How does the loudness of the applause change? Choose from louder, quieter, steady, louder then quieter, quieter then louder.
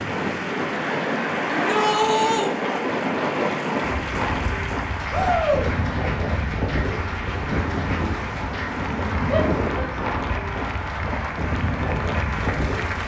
steady.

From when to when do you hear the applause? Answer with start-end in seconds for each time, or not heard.
0.0-13.0.